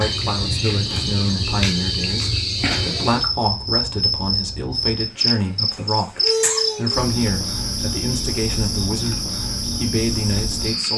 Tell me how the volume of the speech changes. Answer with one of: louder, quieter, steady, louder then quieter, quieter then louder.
steady.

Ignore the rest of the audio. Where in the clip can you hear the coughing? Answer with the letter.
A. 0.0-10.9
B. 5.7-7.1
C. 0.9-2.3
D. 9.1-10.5
B.